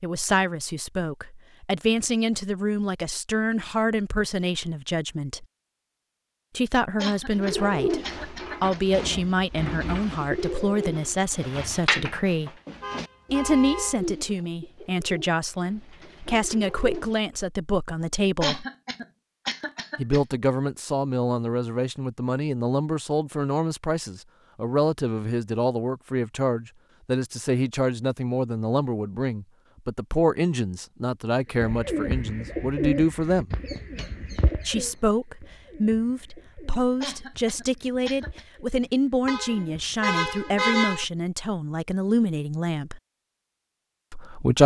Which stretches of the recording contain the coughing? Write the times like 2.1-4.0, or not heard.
7.0-8.9, 18.4-20.4, 37.0-38.5.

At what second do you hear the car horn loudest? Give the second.
41 s.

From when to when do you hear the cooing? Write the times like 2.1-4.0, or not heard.
7.3-17.1, 31.6-41.2.